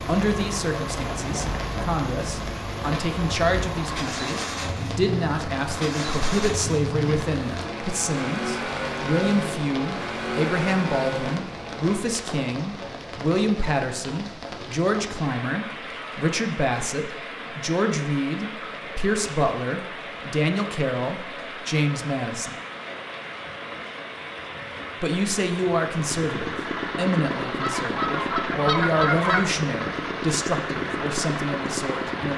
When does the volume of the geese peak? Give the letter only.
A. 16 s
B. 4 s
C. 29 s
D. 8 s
C.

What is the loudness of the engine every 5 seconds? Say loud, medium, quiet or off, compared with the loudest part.
loud, loud, loud, off, off, loud, loud.